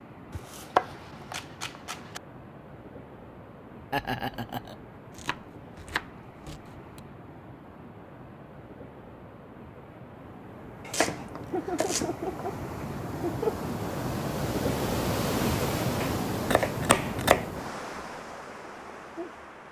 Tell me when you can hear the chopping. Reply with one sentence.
You can hear the chopping from 0.3 to 2.2 s, from 5.2 to 7.0 s, from 10.8 to 12.4 s and from 16.0 to 17.4 s.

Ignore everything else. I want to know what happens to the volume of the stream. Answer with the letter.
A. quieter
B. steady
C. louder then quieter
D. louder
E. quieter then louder
D.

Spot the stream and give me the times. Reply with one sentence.
The stream can be heard from 0.0 to 19.6 s.